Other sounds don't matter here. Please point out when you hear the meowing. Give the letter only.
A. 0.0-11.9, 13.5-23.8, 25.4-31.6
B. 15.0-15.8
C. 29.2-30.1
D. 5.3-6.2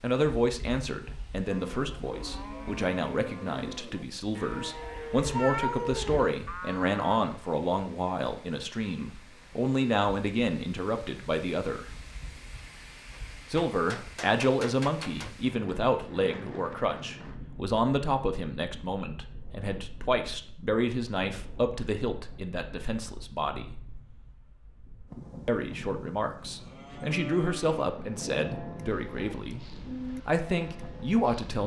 D.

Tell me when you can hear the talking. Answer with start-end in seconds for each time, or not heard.
0.0-11.9, 13.5-23.8, 25.4-31.6.